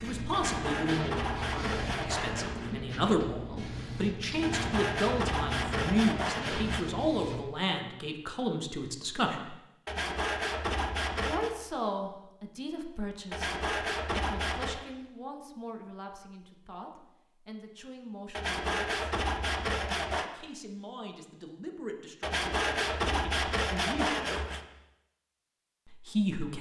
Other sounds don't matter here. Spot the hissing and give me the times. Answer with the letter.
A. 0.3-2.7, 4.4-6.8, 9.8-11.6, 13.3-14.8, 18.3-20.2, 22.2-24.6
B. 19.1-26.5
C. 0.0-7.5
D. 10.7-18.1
C.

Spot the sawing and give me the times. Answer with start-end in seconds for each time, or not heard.
0.3-2.7, 4.4-6.8, 9.8-11.6, 13.3-14.8, 18.3-20.2, 22.2-24.6.